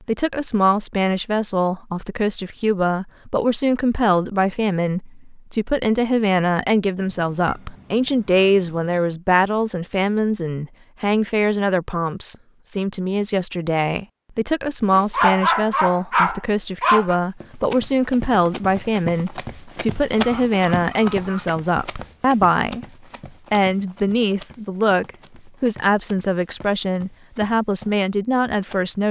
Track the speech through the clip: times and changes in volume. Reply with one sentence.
You can hear the speech from 0.1 to 22.9 s, at a steady volume; and from 23.5 to 29.0 s, at a steady volume.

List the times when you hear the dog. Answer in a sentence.
You can hear the dog from 14.9 to 17.2 s.